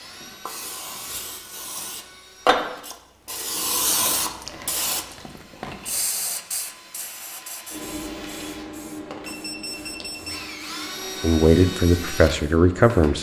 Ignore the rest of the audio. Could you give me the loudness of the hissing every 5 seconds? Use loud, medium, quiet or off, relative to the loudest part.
loud, medium, quiet.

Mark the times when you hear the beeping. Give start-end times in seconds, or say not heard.
9.2-10.4.